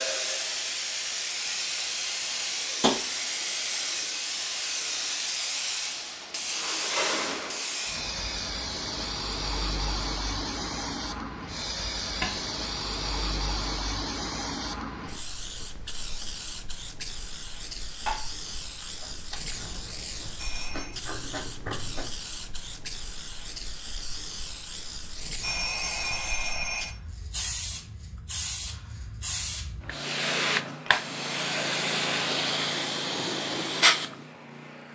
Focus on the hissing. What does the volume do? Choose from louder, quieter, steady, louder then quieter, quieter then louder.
quieter then louder.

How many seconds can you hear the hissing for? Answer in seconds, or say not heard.
35 s.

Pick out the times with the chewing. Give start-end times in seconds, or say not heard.
18.6-22.1.